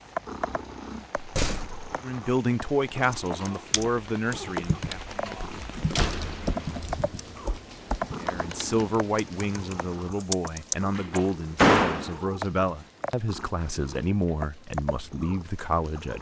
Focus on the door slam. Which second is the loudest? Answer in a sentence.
The volume of the door slam peaks at 12 seconds.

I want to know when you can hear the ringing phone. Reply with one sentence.
The ringing phone can be heard from 4.5 to 5.2 s and from 8.2 to 8.8 s.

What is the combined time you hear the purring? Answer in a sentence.
You can hear the purring for 16 seconds altogether.